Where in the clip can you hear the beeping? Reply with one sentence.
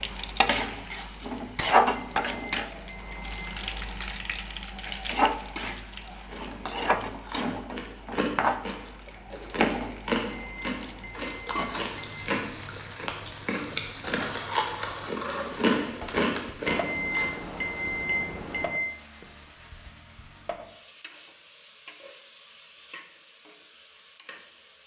The beeping can be heard from 1.9 to 3.6 s, from 10.2 to 12.2 s and from 16.6 to 18.9 s.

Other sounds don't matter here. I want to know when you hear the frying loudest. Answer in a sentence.
The loudest moment of the frying is at 2 seconds.